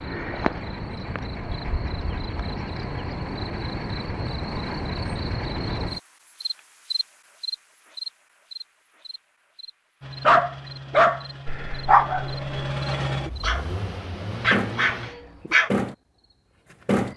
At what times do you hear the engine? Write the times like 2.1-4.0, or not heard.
10.0-15.6.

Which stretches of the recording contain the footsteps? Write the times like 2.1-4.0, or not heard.
not heard.